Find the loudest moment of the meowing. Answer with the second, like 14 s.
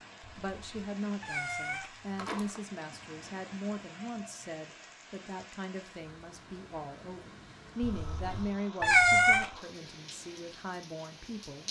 9 s.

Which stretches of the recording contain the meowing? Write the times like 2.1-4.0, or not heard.
0.2-2.6, 7.8-9.5.